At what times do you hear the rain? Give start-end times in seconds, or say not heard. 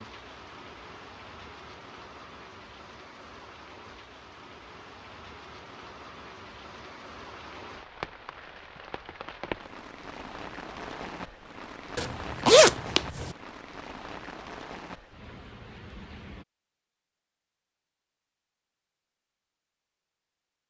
0.0-16.4.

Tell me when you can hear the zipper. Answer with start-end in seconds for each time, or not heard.
11.9-13.3.